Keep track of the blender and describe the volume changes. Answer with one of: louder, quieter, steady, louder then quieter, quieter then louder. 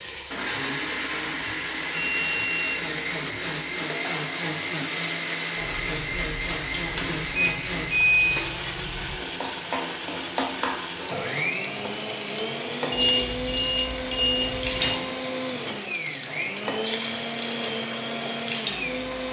steady.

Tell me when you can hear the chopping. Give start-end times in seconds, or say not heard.
not heard.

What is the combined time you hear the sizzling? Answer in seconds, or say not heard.
19 s.